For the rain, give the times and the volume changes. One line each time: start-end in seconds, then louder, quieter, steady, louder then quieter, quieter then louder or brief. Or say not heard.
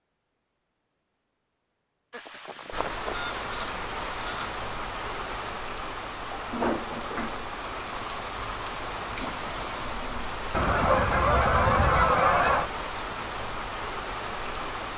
2.7-14.9 steady.